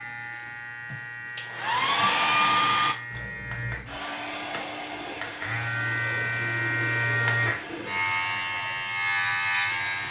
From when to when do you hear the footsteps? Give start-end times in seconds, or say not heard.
not heard.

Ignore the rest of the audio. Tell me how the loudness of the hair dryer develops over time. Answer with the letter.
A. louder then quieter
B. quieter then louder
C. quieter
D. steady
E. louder
C.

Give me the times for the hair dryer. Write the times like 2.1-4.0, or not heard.
0.3-10.0.